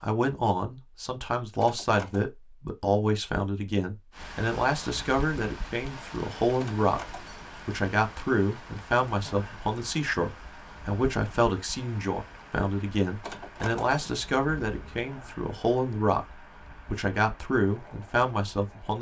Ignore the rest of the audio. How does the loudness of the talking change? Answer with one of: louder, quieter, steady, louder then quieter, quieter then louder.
steady.